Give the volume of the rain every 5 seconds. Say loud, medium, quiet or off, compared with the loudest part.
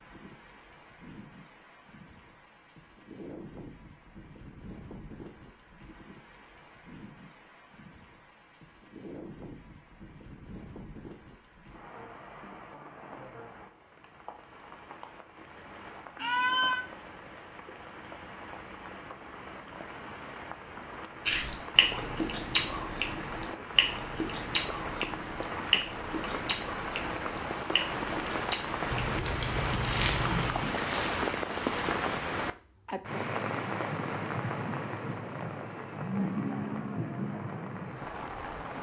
quiet, quiet, quiet, quiet, medium, loud, loud, loud.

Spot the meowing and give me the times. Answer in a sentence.
The meowing can be heard from 16.1 to 16.9 s and from 28.9 to 30.7 s.